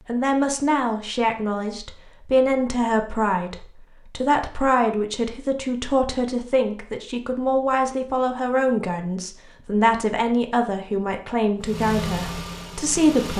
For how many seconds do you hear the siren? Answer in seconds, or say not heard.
not heard.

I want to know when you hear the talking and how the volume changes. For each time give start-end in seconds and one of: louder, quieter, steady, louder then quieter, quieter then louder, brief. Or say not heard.
0.1-13.3 steady.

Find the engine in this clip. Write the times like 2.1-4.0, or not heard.
11.6-13.3.